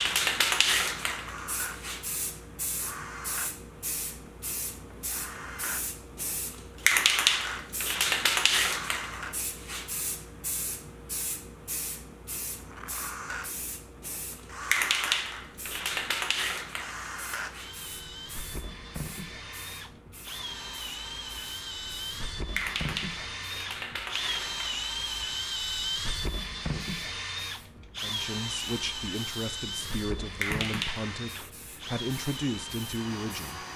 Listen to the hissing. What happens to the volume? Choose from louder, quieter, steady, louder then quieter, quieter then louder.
quieter.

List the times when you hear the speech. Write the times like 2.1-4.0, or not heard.
27.9-33.6.